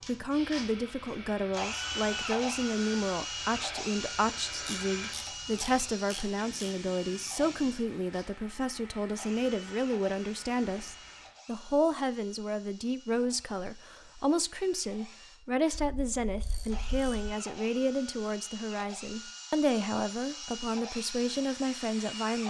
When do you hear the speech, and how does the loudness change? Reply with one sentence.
You can hear the speech from 0.1 to 22.4 s, at a steady volume.